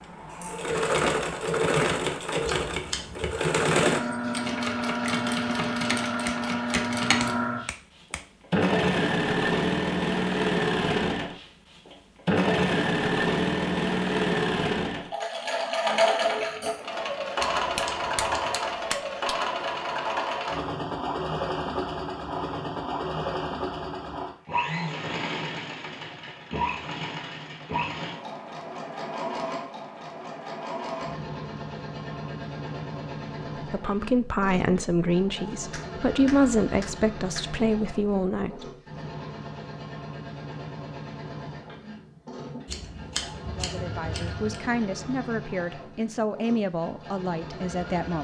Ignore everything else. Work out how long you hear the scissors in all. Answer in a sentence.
The scissors can be heard for 4 seconds in total.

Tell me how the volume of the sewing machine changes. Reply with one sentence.
The loudness of the sewing machine goes down.